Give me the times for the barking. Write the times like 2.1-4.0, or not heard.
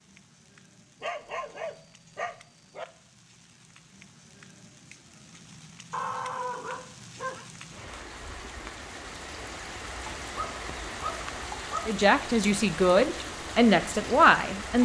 1.0-2.9, 5.9-7.5, 10.3-11.9.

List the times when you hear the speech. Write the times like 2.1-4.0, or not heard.
11.8-14.8.